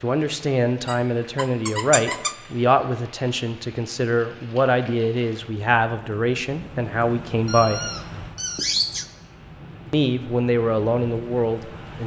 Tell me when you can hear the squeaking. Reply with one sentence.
The squeaking can be heard from 0.8 to 2.4 s and from 7.5 to 9.1 s.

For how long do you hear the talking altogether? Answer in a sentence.
You can hear the talking for 10 seconds altogether.